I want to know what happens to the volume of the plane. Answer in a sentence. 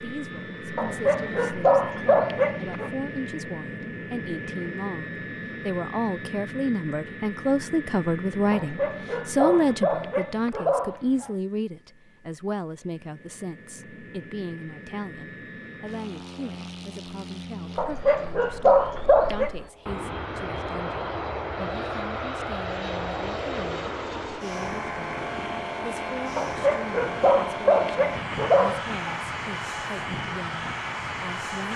The volume of the plane goes down, then up.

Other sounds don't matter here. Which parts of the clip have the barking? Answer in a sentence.
The barking can be heard from 0.8 to 2.9 s, from 8.5 to 11.3 s, from 17.8 to 19.5 s and from 26.4 to 29.2 s.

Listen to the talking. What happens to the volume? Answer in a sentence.
The volume of the talking goes up, then down.